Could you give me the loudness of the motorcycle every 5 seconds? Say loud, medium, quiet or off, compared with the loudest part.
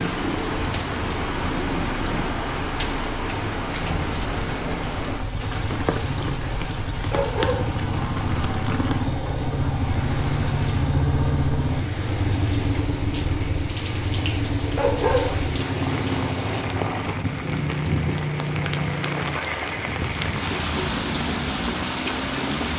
medium, loud, loud, loud, medium.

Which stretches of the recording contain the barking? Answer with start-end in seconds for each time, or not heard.
7.1-8.6, 14.8-17.1.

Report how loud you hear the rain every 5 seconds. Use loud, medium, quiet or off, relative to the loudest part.
loud, medium, medium, loud, loud.